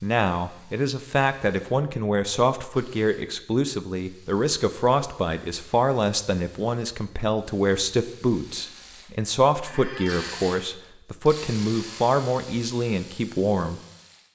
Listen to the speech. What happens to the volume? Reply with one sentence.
The volume of the speech stays about the same.